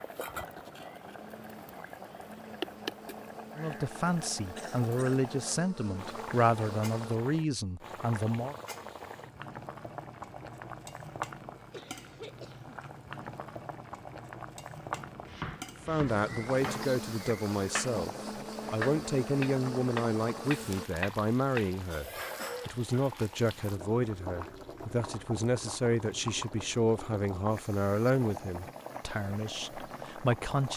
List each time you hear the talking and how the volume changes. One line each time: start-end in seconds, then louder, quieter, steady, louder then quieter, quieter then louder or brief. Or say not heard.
3.5-8.6 steady
15.8-30.7 steady.